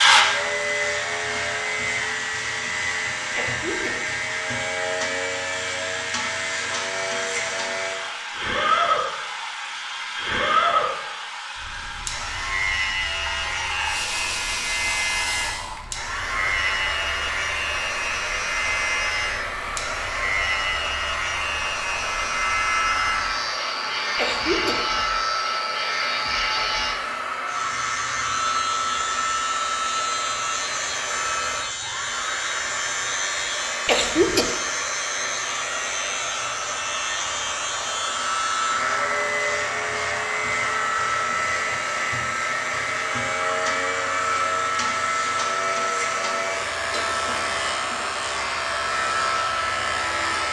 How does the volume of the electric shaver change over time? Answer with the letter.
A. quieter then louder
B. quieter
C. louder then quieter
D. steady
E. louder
D.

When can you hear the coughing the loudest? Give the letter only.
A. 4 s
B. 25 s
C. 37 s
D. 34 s
D.